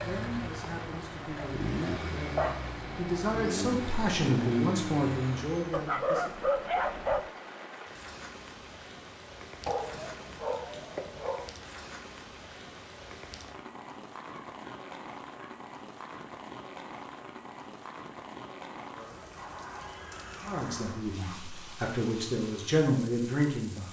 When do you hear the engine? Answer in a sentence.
The engine can be heard from 0.0 to 5.8 s.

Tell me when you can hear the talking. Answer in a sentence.
The talking can be heard from 0.0 to 6.5 s and from 20.4 to 23.8 s.